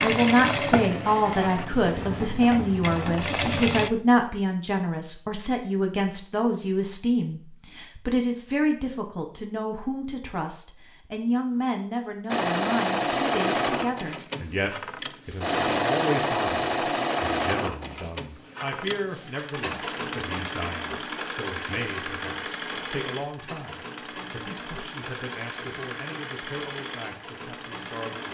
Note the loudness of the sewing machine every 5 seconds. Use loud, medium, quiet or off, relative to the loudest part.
loud, off, loud, loud, medium, medium.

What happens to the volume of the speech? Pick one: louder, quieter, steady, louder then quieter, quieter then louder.
quieter.